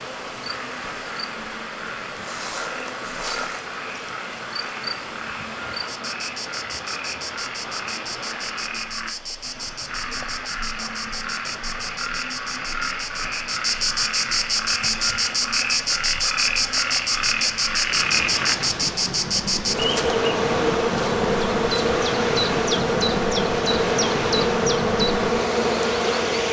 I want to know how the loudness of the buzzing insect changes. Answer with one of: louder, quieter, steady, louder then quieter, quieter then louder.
louder.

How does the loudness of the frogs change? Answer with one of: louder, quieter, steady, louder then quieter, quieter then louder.
louder.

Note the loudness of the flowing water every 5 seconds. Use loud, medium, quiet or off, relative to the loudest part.
medium, medium, quiet, medium, loud, loud.